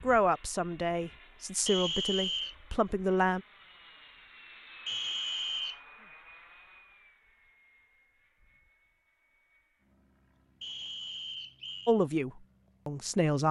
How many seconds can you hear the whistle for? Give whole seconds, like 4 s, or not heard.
3 s.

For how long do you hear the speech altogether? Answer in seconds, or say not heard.
5 s.